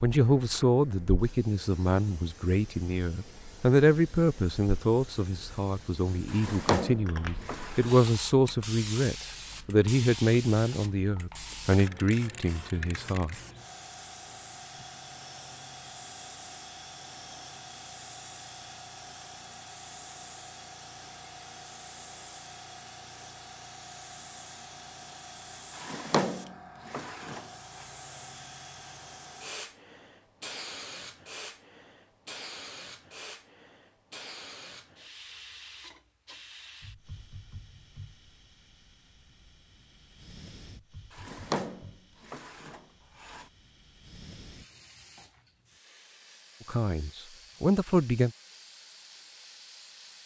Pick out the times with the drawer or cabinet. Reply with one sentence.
You can hear the drawer or cabinet from 6.3 to 8.0 s, from 25.8 to 27.9 s and from 41.1 to 43.5 s.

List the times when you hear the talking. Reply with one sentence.
The talking can be heard from 0.0 to 13.3 s and from 46.6 to 48.3 s.